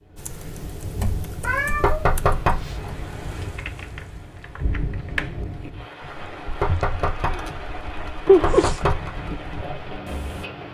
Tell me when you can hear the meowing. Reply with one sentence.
The meowing can be heard from 1.4 to 3.0 s and from 8.2 to 8.7 s.